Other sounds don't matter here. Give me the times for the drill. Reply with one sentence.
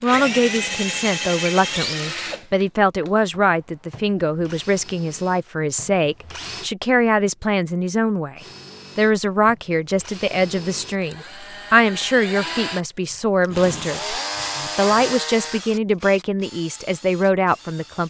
The drill can be heard from 0.0 to 6.7 s and from 8.3 to 18.0 s.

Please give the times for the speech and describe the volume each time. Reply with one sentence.
You can hear the speech from 0.0 to 18.0 s, at a steady volume.